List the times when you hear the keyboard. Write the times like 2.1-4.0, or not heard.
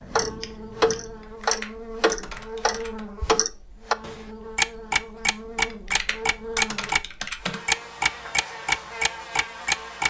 1.2-3.0, 5.7-7.6.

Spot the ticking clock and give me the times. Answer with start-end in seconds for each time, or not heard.
0.0-7.0, 7.7-10.0.